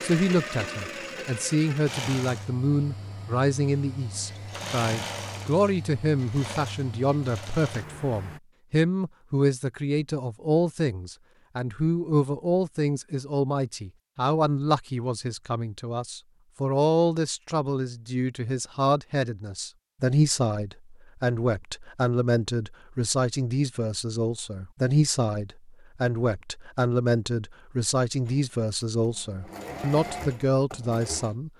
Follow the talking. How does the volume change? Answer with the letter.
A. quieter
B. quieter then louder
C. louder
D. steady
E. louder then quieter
D.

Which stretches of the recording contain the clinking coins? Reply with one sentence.
You can't hear the clinking coins here.